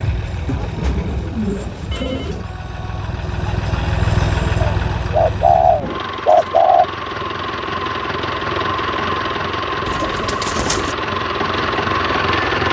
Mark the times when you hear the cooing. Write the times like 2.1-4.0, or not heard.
0.5-2.5, 4.6-6.8, 9.8-10.9.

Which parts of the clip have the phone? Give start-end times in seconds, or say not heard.
1.9-2.5.